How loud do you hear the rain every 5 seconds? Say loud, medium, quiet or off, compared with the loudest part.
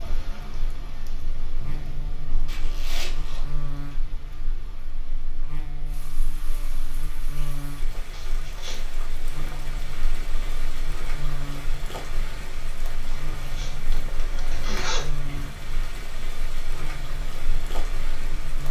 medium, medium, loud, loud.